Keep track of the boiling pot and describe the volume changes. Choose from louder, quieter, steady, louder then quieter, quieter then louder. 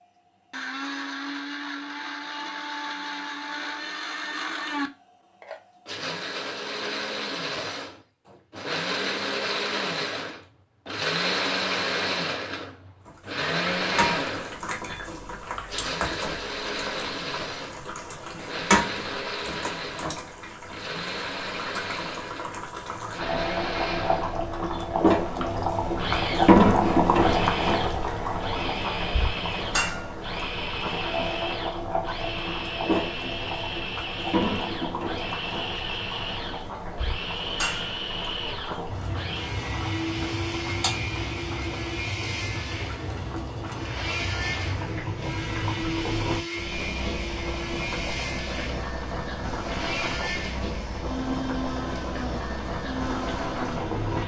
louder then quieter.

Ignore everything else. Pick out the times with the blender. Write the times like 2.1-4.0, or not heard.
0.1-54.2.